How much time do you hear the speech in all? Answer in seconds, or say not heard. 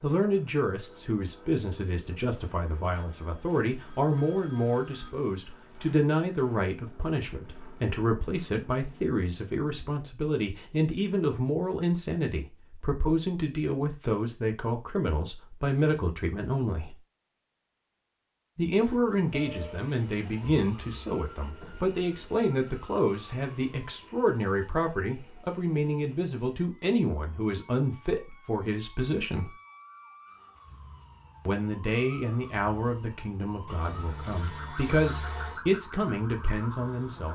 34 s.